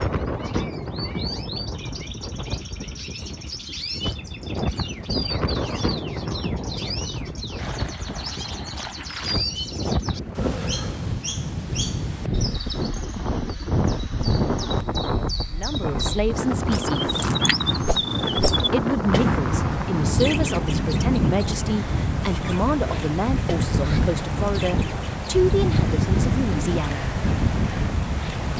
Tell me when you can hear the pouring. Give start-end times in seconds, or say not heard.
7.5-9.4.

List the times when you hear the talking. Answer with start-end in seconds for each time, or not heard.
15.5-17.1, 18.7-27.1.